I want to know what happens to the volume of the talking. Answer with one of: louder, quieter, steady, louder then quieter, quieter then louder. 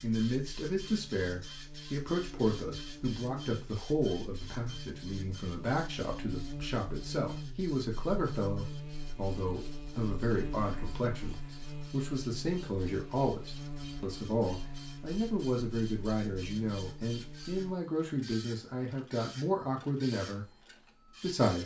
steady.